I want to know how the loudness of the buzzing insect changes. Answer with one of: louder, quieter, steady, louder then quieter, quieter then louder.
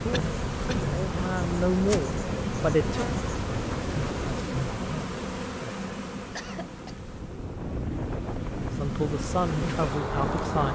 quieter then louder.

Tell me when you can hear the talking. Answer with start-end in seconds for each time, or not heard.
0.0-3.0, 8.6-10.6.